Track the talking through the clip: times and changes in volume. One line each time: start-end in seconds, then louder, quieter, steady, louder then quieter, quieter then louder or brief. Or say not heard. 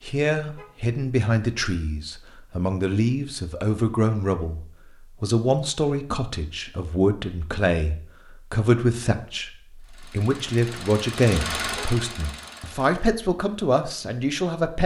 0.0-14.8 steady.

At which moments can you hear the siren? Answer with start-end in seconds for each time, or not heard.
not heard.